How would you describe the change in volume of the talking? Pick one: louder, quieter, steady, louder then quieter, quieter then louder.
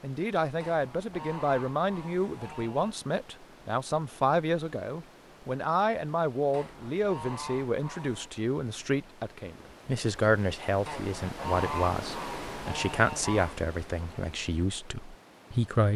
steady.